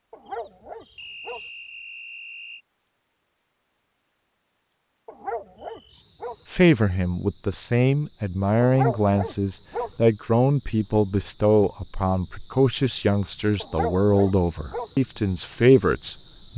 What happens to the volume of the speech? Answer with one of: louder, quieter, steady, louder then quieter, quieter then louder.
steady.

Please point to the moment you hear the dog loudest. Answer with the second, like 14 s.
9 s.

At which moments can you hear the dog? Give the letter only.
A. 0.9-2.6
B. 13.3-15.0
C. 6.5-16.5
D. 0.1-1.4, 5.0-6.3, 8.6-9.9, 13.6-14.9
D.